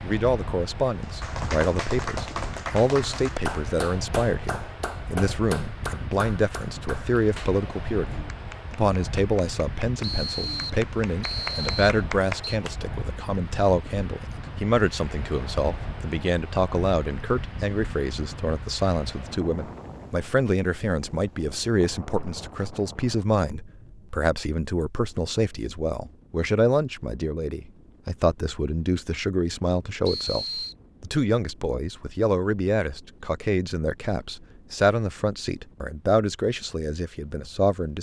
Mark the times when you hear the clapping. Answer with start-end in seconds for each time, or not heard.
1.0-12.8.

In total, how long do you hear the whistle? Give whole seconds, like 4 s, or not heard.
3 s.